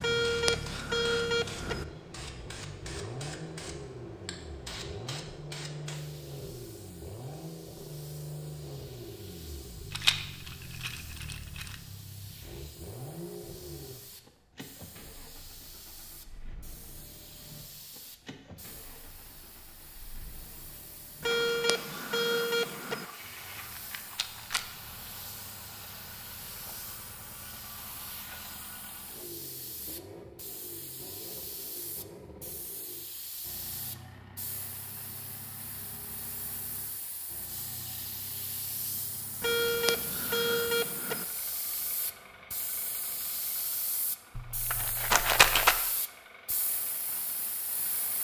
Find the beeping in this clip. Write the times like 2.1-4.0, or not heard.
0.0-1.9, 21.2-23.1, 39.4-41.2.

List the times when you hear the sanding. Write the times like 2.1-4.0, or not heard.
not heard.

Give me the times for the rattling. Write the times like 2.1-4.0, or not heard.
9.9-11.8, 23.8-24.6, 44.4-45.8.